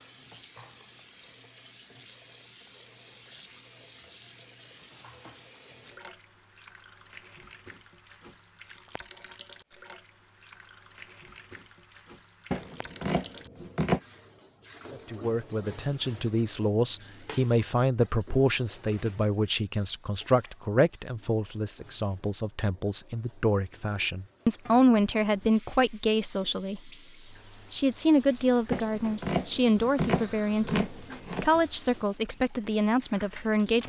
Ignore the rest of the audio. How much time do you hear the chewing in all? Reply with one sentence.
You can't hear the chewing here.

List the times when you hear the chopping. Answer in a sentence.
The chopping can be heard from 12.5 to 14.0 s and from 28.7 to 31.5 s.